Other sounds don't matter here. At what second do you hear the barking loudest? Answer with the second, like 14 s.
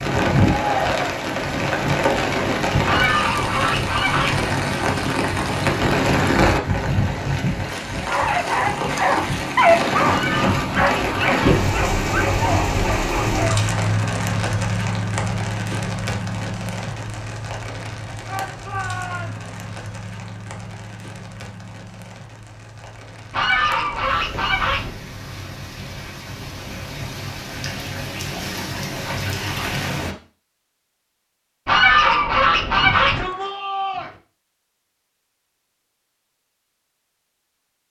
10 s.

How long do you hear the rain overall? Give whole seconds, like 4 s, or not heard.
30 s.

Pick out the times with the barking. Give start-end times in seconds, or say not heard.
8.1-13.6.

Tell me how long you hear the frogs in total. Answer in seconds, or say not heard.
not heard.